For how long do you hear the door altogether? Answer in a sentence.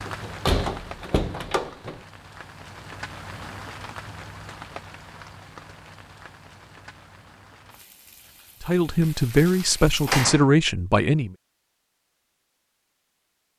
You can hear the door for 3 seconds altogether.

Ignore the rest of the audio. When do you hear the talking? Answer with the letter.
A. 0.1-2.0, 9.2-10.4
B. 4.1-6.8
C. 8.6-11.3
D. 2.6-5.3
C.